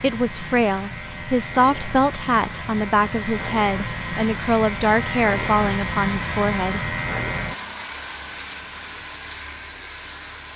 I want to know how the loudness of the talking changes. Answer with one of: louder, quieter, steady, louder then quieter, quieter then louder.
steady.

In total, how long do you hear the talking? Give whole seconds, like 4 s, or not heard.
7 s.